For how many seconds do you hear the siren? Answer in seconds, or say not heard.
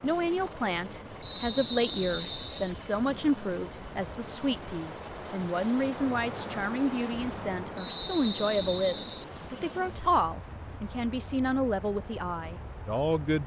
not heard.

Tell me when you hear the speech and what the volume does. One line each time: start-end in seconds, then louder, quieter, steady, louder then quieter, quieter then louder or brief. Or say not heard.
0.0-13.4 steady.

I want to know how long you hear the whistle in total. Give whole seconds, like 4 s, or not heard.
3 s.